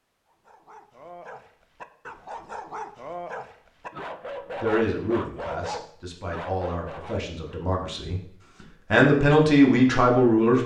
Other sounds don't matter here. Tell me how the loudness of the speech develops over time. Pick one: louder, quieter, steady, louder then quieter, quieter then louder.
louder.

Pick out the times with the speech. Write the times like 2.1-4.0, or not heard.
4.6-10.6.